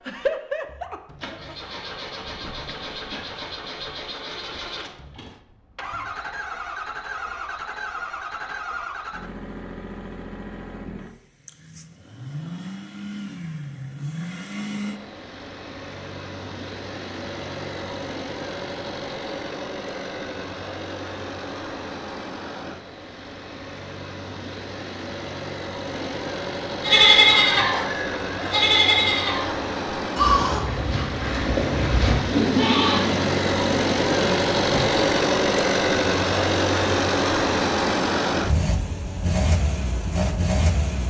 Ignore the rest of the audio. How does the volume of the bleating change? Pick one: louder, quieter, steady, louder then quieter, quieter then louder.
quieter.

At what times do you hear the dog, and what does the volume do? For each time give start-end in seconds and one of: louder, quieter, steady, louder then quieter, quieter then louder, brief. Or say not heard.
not heard.